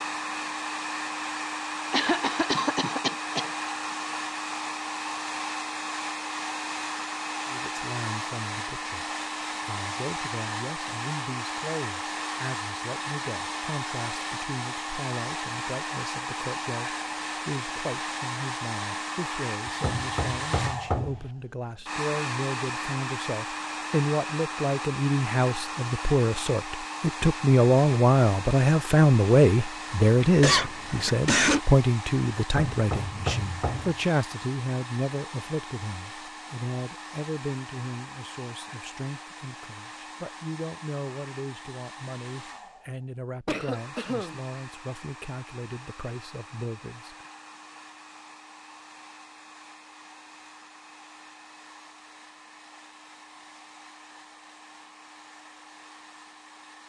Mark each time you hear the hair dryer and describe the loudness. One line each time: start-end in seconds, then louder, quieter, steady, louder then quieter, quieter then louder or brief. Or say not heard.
0.0-56.8 quieter.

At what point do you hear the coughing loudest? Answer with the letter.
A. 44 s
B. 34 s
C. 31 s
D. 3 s
C.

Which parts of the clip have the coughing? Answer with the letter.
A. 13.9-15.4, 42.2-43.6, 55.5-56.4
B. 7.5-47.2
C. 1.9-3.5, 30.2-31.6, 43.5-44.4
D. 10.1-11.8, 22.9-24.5
C.